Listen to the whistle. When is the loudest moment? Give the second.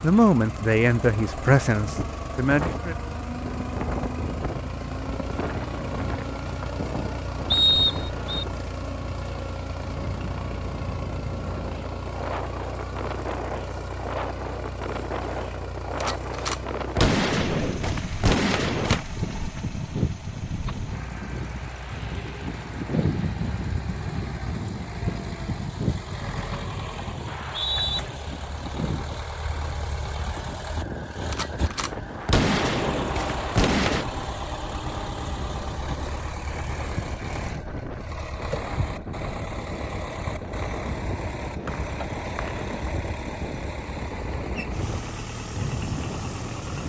8 s.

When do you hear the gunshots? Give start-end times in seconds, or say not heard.
16.0-19.1, 31.3-34.0.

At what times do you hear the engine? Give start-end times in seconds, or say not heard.
0.0-46.8.